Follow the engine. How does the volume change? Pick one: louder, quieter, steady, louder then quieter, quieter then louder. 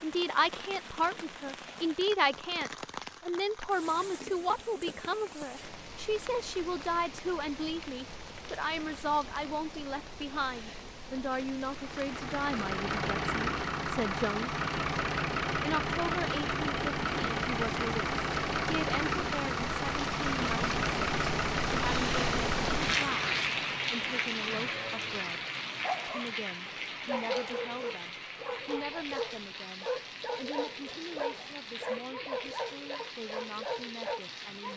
steady.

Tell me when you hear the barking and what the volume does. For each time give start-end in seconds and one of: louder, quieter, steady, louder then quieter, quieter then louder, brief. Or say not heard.
25.8-34.7 steady.